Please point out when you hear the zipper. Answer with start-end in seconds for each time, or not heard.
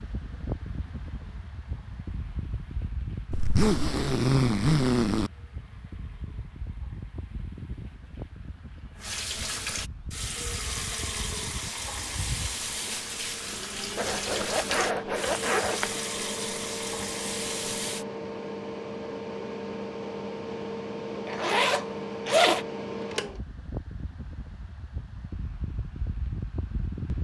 3.3-5.3, 13.9-15.9, 21.2-22.6.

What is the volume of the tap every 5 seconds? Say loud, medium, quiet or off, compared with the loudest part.
quiet, medium, loud, loud, off, off.